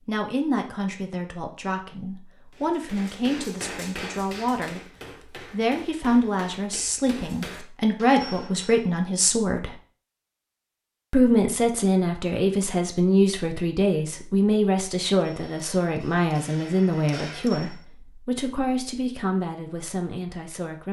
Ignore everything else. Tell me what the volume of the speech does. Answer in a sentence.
The loudness of the speech goes up, then down.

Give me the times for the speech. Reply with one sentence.
You can hear the speech from 0.1 to 4.9 s, from 5.5 to 9.8 s and from 11.1 to 20.8 s.